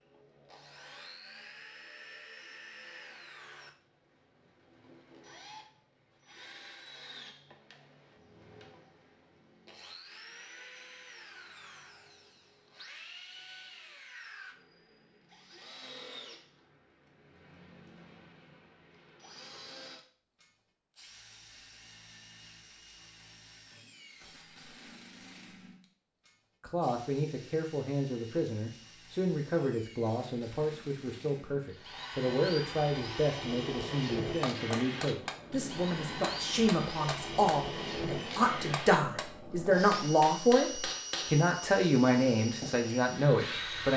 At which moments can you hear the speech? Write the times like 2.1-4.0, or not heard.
26.6-43.9.